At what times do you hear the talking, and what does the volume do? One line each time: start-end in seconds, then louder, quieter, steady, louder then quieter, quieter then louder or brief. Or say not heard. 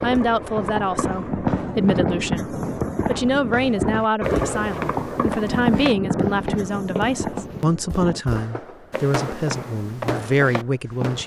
0.0-11.2 steady.